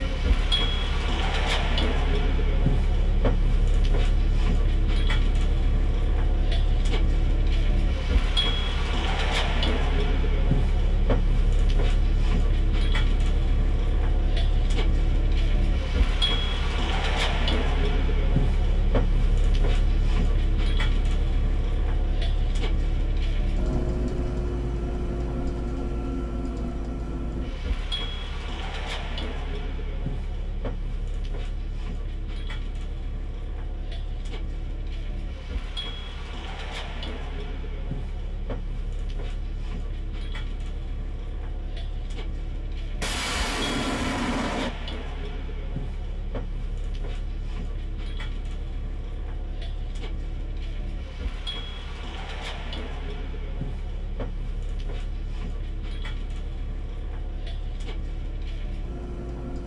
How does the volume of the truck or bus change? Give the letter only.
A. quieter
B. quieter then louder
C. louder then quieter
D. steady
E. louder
A.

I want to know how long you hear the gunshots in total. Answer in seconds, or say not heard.
2 s.